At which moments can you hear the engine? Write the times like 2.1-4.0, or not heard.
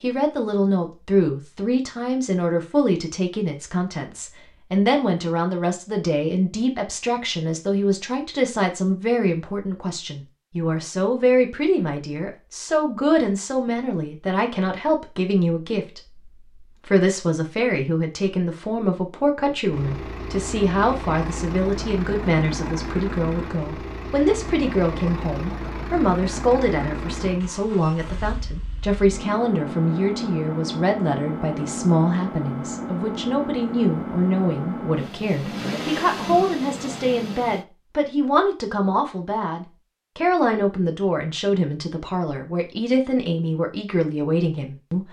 19.6-37.6.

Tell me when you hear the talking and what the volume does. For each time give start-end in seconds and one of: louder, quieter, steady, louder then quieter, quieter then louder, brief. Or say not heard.
0.0-45.0 steady.